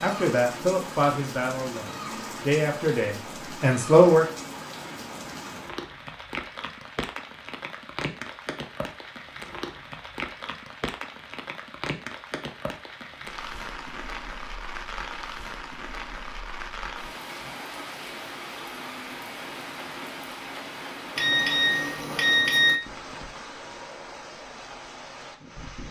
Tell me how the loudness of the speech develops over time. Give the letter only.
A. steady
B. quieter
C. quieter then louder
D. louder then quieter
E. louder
C.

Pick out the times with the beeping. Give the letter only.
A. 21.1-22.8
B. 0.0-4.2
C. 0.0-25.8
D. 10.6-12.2
A.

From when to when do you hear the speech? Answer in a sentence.
The speech can be heard from 0.0 to 4.2 s.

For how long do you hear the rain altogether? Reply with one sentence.
You can hear the rain for 26 seconds altogether.